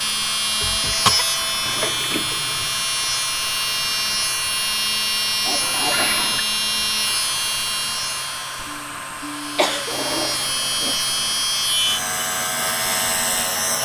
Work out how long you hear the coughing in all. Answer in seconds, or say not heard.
2 s.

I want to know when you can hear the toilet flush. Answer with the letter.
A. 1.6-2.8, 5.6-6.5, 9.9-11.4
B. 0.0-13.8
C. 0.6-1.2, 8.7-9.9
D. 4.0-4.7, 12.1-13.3
A.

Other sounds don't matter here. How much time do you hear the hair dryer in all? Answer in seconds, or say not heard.
14 s.